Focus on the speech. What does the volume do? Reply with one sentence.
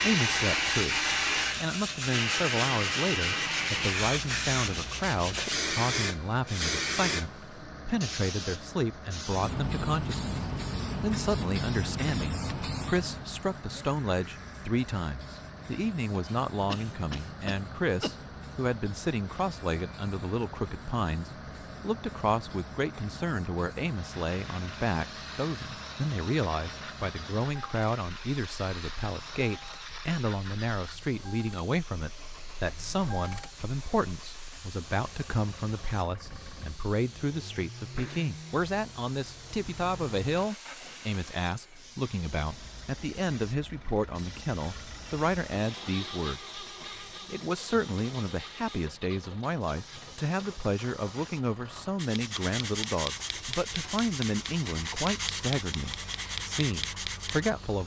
The loudness of the speech stays about the same.